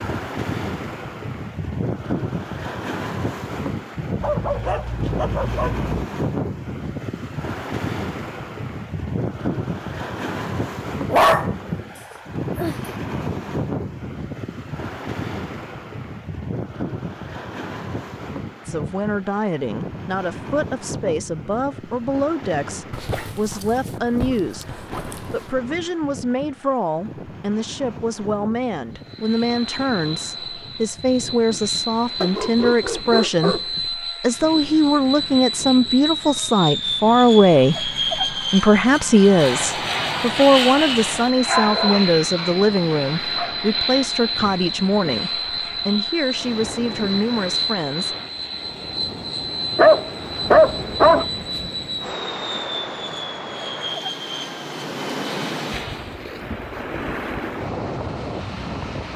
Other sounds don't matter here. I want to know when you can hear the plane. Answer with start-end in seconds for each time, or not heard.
28.9-56.2.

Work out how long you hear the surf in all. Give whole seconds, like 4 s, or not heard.
59 s.